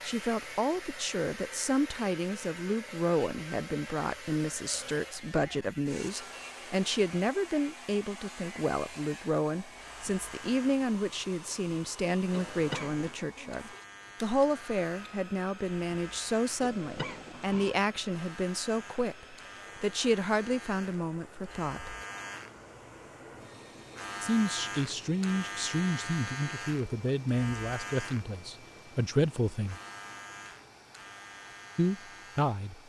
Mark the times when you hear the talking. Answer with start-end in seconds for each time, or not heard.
0.0-21.9, 24.2-29.8, 31.8-32.8.